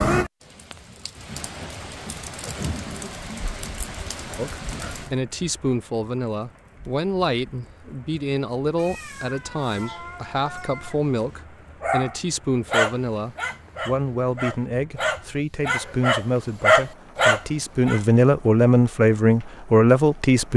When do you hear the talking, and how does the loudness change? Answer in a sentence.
The talking can be heard from 4.3 to 20.5 s, getting louder.